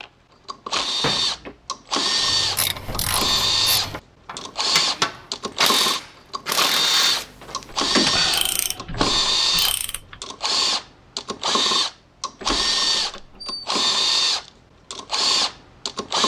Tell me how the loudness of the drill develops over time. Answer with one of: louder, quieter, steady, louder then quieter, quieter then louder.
steady.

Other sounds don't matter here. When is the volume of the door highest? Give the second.
8 s.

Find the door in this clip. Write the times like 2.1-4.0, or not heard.
0.8-1.6, 7.1-8.2, 12.4-13.6.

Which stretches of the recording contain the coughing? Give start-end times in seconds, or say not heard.
not heard.